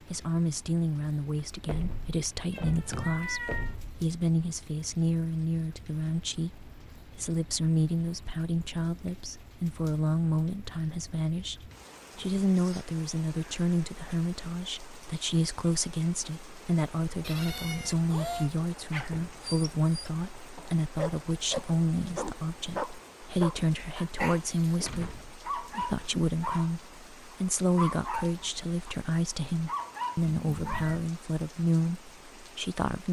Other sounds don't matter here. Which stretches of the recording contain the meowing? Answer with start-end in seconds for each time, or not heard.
2.5-3.8, 17.2-18.5, 30.2-31.1.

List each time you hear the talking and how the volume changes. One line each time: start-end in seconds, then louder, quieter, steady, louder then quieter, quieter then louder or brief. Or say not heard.
0.1-33.0 steady.